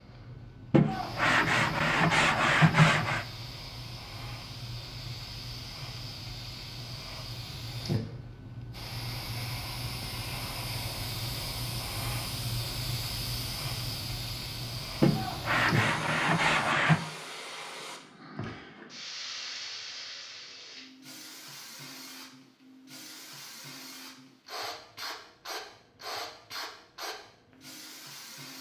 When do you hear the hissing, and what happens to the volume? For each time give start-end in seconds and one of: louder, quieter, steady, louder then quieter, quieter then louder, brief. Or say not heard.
0.0-28.5 louder then quieter.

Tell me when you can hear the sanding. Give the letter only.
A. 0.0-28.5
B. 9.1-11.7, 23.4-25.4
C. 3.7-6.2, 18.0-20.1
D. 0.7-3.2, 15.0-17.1
D.